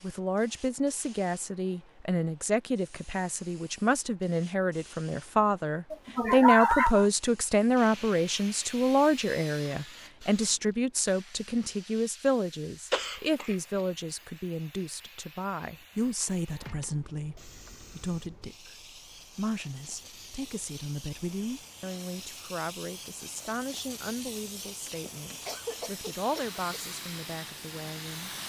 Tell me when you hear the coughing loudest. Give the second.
7 s.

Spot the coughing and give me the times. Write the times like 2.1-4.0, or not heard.
5.9-7.0, 12.9-13.6, 24.9-26.6.